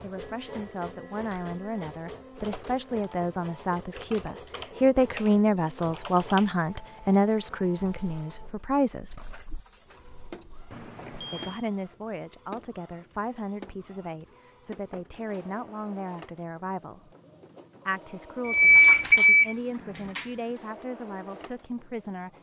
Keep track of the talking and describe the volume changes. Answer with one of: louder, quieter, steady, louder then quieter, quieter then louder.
louder then quieter.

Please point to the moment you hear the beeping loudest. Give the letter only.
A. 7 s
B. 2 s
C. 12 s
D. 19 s
D.